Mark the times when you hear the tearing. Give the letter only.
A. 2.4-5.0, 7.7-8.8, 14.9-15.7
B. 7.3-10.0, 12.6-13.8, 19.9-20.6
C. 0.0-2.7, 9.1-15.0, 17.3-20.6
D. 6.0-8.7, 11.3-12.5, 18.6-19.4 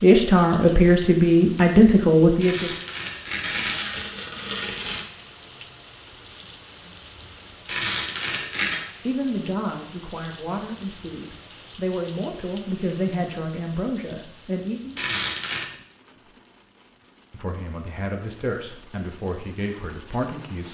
A.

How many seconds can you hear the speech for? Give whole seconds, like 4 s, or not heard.
12 s.